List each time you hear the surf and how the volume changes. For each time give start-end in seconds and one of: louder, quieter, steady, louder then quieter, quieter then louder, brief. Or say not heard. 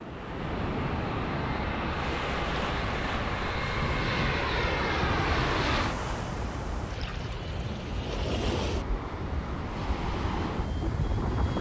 0.0-11.5 steady.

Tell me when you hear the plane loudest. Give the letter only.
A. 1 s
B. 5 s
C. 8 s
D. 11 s
B.